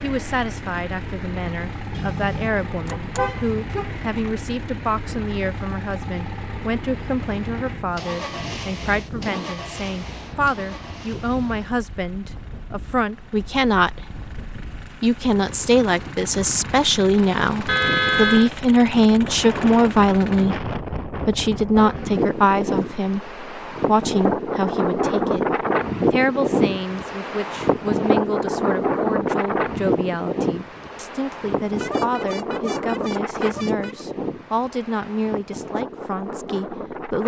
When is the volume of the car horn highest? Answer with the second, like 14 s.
18 s.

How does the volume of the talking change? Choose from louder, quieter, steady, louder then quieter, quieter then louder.
louder then quieter.